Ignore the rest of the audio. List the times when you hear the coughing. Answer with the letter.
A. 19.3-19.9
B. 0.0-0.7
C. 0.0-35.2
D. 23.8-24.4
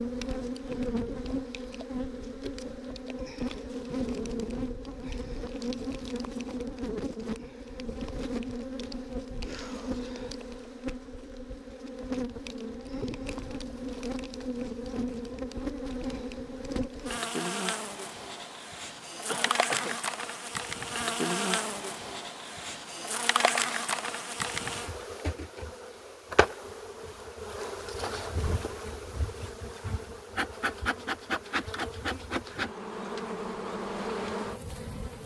A.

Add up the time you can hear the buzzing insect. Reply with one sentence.
You can hear the buzzing insect for 35 seconds altogether.